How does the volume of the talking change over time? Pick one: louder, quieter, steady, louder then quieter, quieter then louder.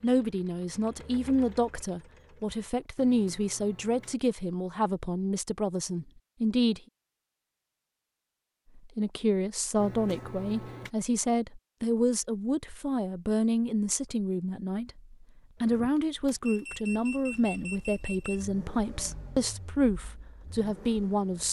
steady.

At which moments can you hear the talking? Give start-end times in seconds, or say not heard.
0.0-6.8, 8.8-21.4.